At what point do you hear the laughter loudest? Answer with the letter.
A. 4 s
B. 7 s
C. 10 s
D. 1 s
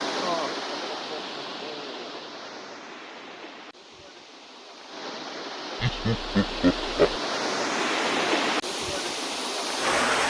B.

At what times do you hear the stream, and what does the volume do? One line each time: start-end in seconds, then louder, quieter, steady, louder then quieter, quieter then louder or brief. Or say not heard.
0.0-10.2 quieter then louder.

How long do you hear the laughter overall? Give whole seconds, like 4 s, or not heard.
3 s.